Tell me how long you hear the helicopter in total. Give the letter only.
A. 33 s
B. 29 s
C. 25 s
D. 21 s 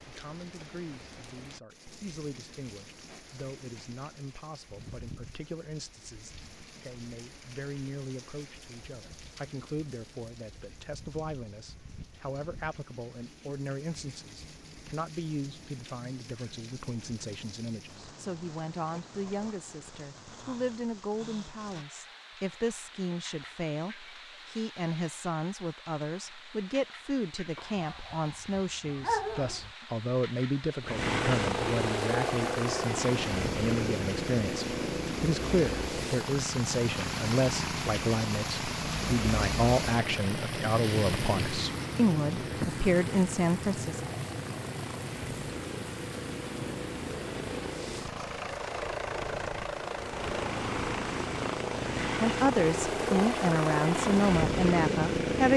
C.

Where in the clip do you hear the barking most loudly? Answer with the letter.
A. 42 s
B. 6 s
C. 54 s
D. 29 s
D.